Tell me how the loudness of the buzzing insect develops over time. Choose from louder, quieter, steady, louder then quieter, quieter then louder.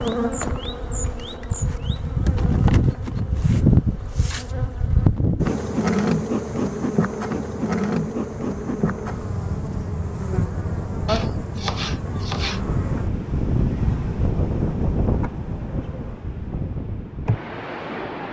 quieter.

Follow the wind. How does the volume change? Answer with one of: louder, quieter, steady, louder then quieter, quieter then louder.
louder then quieter.